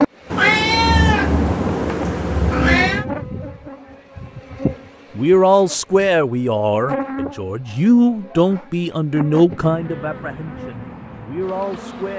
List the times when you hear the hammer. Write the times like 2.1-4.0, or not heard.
not heard.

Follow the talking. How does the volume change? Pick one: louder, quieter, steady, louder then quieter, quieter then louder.
quieter.